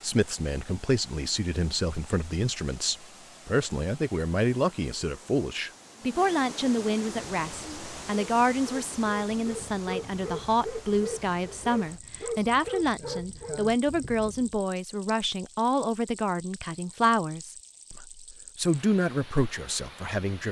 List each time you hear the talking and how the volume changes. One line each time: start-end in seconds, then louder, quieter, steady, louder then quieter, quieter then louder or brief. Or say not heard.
0.0-20.4 steady.